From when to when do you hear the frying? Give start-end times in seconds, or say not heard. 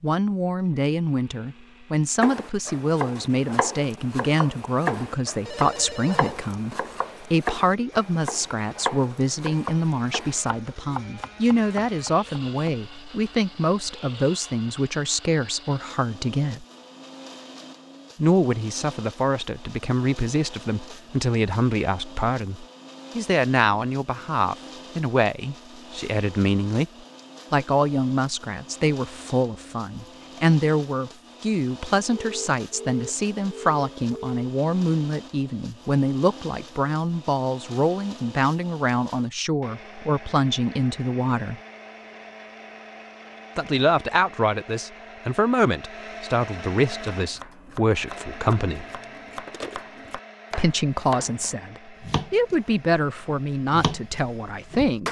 not heard.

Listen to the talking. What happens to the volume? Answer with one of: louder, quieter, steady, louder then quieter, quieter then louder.
steady.